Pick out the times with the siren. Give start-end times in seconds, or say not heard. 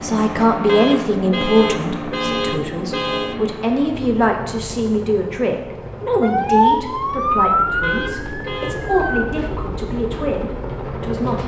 6.2-9.2.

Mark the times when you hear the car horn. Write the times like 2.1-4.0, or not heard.
0.7-3.4, 7.8-8.8.